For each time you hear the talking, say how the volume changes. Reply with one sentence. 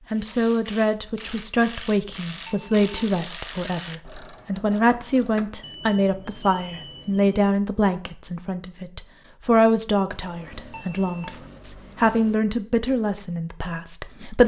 You can hear the talking from 0.1 to 14.4 s, at a steady volume.